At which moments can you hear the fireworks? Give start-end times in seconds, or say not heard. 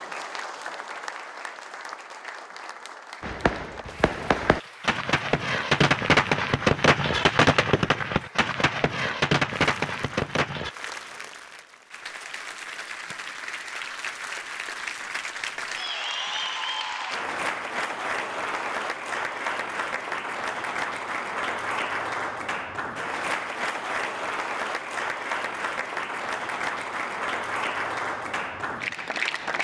3.2-10.7.